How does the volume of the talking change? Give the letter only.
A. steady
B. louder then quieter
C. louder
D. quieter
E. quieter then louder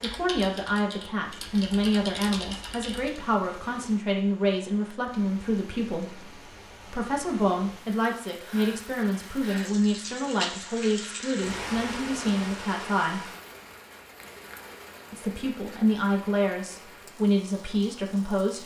A.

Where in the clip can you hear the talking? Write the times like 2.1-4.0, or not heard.
0.0-13.3, 15.1-18.6.